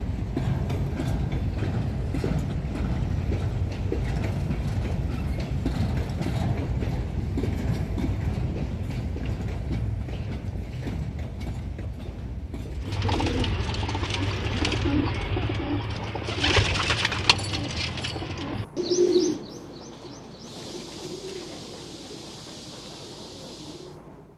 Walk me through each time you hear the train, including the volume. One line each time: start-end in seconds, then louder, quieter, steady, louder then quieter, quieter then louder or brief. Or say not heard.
0.0-24.3 quieter.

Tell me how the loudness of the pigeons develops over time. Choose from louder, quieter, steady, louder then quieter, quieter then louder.
quieter.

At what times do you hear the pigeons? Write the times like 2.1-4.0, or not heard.
12.8-24.0.